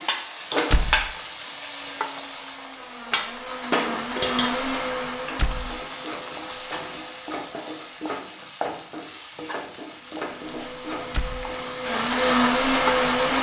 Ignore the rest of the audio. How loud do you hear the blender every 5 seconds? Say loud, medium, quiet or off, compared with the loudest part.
medium, quiet, loud.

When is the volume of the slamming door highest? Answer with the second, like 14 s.
1 s.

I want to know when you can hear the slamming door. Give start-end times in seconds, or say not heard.
0.7-1.1, 5.3-5.8, 11.1-11.5.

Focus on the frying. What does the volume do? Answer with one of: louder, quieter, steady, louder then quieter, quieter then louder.
quieter.